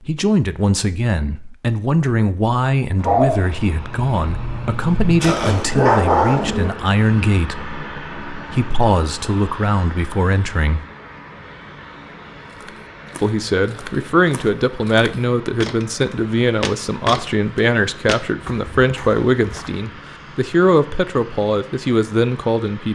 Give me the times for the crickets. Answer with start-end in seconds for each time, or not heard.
not heard.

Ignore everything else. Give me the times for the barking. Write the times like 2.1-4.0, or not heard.
2.9-6.7.